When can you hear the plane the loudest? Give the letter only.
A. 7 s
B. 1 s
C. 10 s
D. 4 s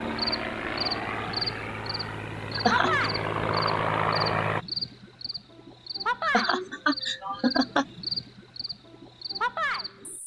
D.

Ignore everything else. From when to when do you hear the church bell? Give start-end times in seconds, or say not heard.
not heard.